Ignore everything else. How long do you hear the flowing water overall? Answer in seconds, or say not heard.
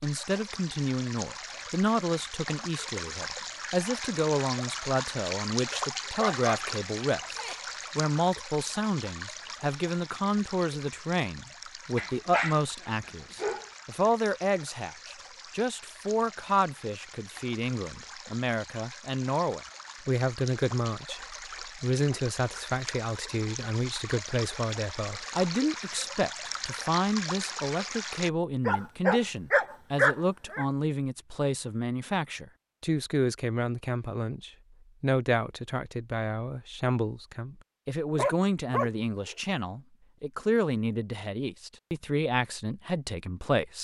28 s.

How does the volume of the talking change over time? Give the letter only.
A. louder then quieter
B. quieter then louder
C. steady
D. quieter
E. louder
C.